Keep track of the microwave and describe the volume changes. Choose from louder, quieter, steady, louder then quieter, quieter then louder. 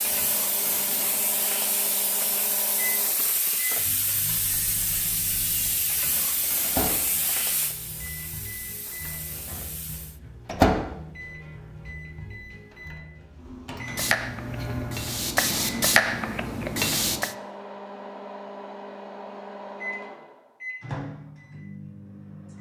louder then quieter.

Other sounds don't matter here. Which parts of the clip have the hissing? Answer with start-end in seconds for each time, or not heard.
0.0-10.2, 13.8-17.4.